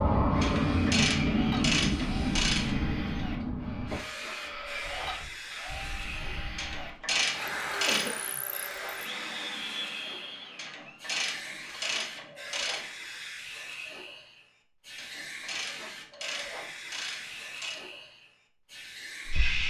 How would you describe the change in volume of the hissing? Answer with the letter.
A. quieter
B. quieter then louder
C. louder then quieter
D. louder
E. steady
A.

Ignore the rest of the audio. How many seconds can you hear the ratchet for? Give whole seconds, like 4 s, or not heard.
9 s.